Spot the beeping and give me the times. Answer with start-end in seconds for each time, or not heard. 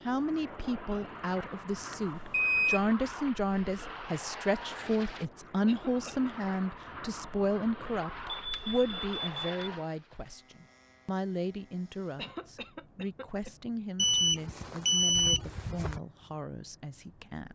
1.9-2.8, 8.2-9.7, 13.9-16.0.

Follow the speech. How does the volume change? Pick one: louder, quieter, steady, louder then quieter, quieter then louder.
quieter.